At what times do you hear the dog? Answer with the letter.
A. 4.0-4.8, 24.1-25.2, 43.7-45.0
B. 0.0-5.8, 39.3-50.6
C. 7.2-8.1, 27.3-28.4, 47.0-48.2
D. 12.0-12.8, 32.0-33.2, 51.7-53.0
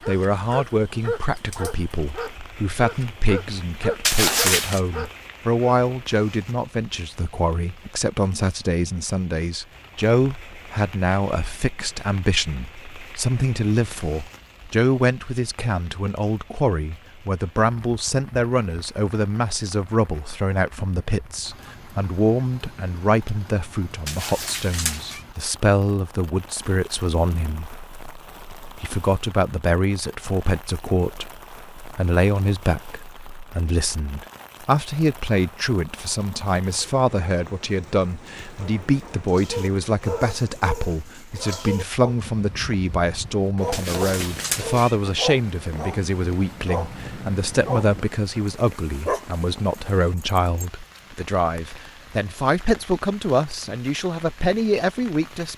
B.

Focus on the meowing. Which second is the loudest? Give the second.
4 s.